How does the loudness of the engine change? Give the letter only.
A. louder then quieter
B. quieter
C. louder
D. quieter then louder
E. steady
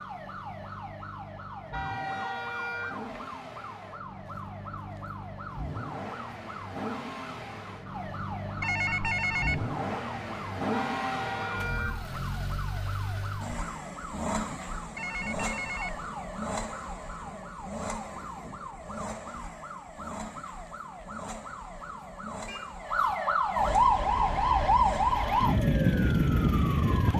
A.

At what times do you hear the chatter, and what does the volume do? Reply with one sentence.
The chatter can't be heard in this clip.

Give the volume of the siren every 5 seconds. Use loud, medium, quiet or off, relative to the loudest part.
quiet, quiet, quiet, quiet, loud, loud.